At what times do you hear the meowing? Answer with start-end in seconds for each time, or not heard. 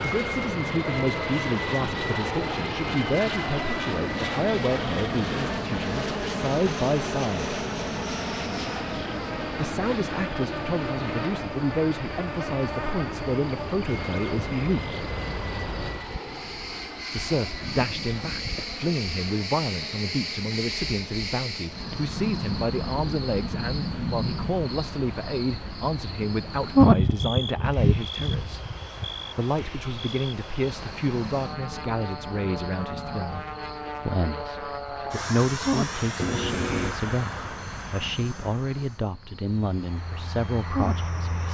36.1-37.0.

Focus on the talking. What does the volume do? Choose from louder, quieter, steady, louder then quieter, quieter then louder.
steady.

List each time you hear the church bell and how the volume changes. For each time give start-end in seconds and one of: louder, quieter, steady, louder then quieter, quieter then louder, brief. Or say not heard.
not heard.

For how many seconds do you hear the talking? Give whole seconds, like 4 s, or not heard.
36 s.